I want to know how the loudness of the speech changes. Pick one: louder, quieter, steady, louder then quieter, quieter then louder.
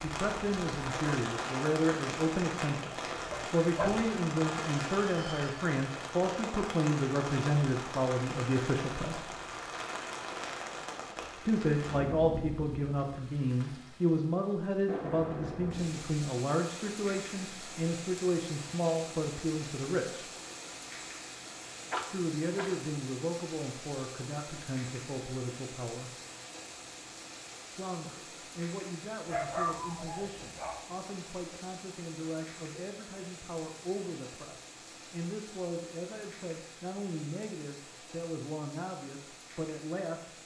quieter.